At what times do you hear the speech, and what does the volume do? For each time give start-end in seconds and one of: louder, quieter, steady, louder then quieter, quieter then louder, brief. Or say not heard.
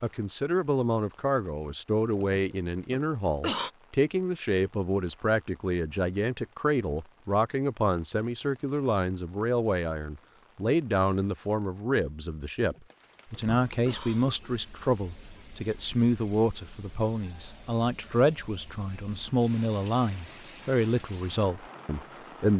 0.0-22.5 steady.